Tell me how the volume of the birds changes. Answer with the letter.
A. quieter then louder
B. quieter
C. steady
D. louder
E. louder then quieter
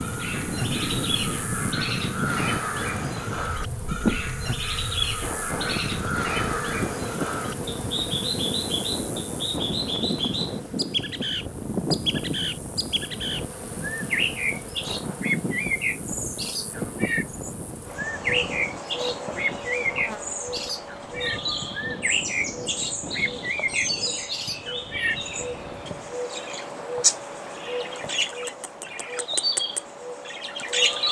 C.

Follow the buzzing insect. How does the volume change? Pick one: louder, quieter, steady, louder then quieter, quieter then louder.
steady.